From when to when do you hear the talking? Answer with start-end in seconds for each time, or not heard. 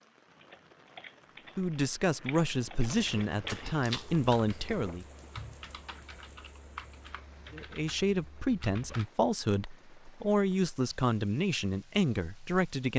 1.6-5.0, 7.5-12.9.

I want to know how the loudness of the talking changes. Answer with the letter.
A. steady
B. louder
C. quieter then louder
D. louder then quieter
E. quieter
A.